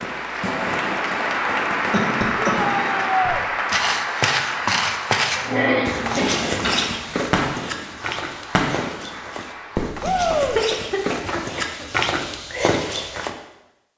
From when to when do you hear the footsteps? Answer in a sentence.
You can hear the footsteps from 3.2 to 13.3 s.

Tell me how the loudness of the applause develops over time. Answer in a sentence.
The volume of the applause goes down.